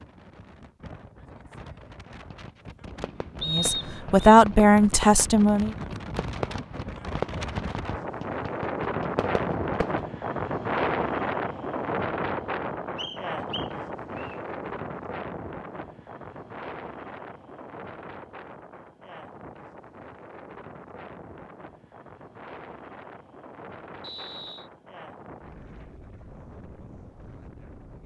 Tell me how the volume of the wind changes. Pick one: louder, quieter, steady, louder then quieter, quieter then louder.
louder then quieter.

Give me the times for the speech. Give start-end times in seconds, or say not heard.
3.5-5.8.